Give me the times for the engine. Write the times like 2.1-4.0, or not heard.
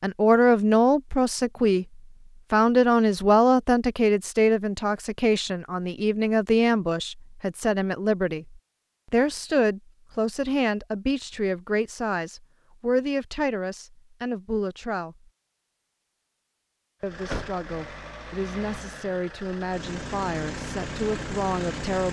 17.0-22.0.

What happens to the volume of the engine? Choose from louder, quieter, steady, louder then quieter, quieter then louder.
louder.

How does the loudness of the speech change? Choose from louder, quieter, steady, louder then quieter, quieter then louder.
quieter.